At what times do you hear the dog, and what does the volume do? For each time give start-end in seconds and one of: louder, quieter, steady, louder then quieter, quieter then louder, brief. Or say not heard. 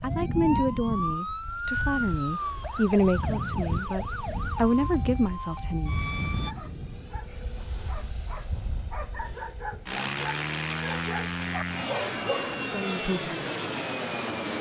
6.4-12.5 louder.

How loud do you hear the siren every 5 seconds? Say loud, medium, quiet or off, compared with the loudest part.
loud, loud, off.